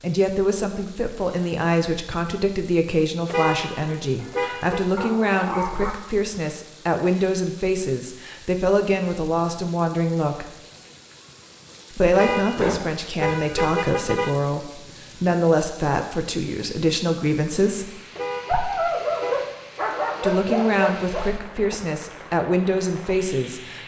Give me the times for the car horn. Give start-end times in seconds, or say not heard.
3.2-4.8, 12.2-14.3, 18.1-19.5.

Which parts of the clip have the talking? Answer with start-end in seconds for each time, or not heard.
0.0-10.5, 11.9-17.9, 20.2-23.8.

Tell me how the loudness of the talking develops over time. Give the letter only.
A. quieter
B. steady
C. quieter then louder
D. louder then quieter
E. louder
B.